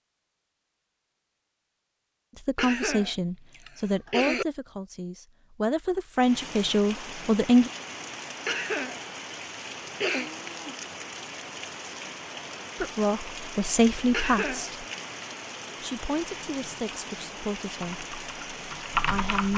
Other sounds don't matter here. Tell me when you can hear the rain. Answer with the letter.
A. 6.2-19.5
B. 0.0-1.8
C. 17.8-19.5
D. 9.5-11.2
A.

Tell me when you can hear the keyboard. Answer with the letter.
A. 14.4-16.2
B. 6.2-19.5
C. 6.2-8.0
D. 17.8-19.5
D.